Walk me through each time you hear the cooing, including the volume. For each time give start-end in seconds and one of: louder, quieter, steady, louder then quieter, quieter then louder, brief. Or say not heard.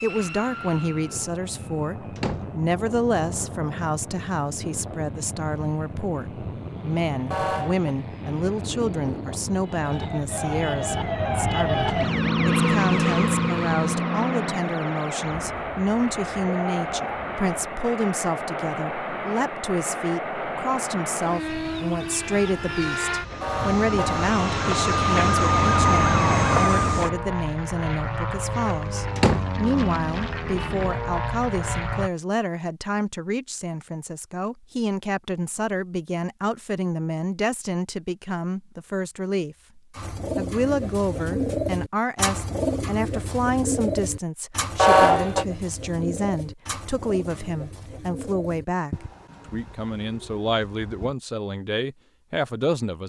39.9-51.1 quieter.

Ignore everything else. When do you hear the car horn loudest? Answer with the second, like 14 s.
45 s.